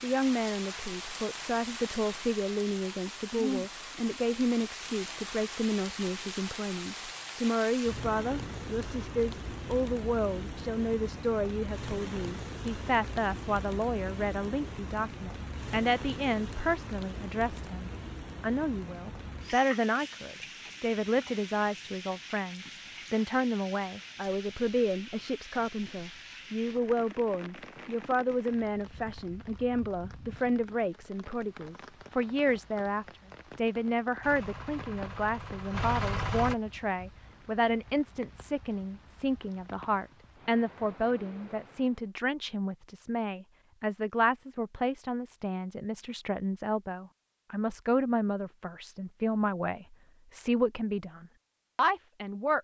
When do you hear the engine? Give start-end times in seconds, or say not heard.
34.2-36.5.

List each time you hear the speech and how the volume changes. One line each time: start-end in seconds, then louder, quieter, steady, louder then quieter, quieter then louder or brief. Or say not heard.
0.0-52.5 steady.